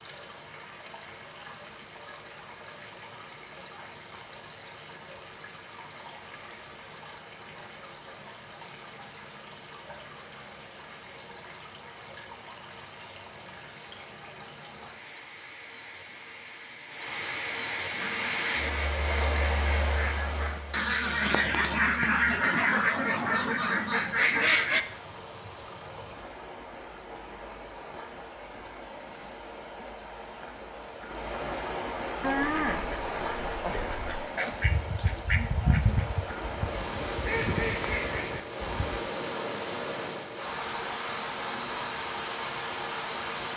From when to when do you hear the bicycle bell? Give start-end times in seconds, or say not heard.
not heard.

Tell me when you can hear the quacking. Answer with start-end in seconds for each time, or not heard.
17.9-24.9, 32.2-39.0.